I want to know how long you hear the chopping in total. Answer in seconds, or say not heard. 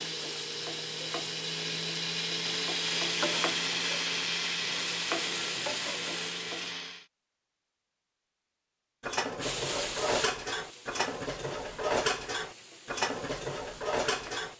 not heard.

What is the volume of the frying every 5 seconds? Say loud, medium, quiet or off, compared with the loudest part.
loud, loud, medium.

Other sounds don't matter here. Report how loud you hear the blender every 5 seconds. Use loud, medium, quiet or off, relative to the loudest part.
loud, loud, off.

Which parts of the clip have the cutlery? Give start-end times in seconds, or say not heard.
9.0-14.5.